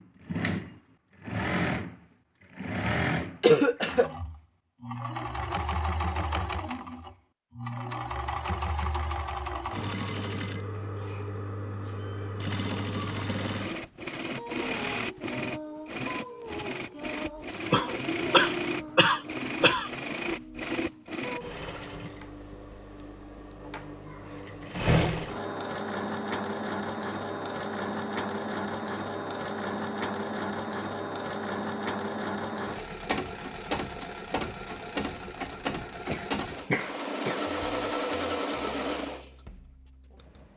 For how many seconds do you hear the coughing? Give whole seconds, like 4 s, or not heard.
4 s.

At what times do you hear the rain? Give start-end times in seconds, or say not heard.
not heard.